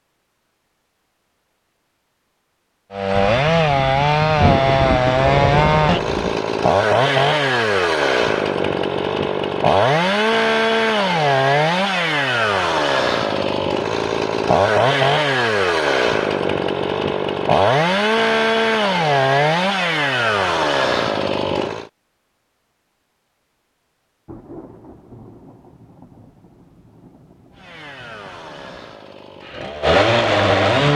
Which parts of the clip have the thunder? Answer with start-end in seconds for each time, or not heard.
3.1-6.4, 24.2-28.9.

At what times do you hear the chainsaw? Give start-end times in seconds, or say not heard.
2.9-21.9, 27.5-30.9.